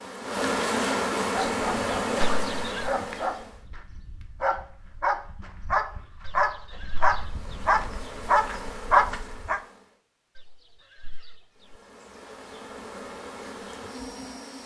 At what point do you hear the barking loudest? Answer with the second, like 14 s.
9 s.